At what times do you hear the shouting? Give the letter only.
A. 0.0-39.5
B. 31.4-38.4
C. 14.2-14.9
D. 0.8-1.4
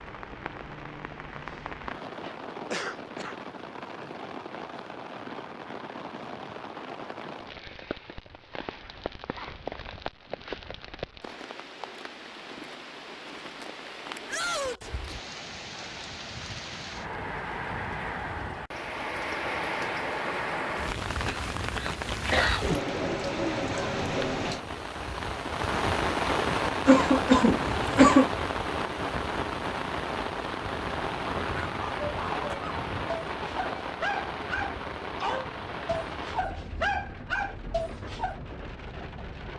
C.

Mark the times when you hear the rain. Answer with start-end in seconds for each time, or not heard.
0.0-39.5.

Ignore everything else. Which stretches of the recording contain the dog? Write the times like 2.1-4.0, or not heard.
31.4-38.4.